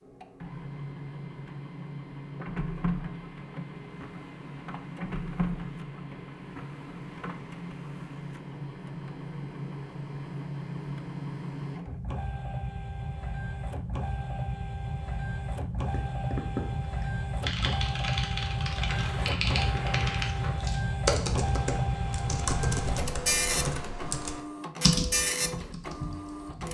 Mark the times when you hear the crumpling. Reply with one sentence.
The crumpling can be heard from 18.9 to 20.7 s.